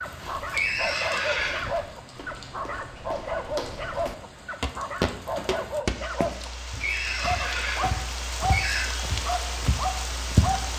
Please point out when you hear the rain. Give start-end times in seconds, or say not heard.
0.0-10.7.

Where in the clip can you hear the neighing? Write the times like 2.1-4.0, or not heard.
0.5-1.8, 6.8-8.9.